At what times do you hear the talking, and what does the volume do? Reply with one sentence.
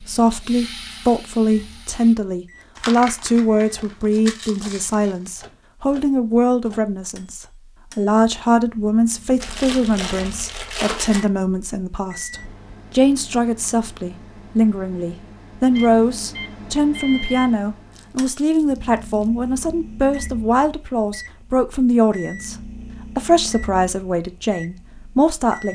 The talking can be heard from 0.0 to 22.6 s, at a steady volume; and briefly from 23.1 to 25.6 s.